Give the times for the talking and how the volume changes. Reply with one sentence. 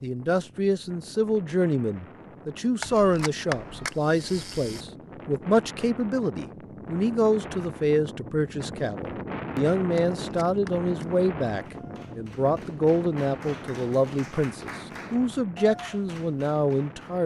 You can hear the talking from 0.0 to 17.2 s, at a steady volume.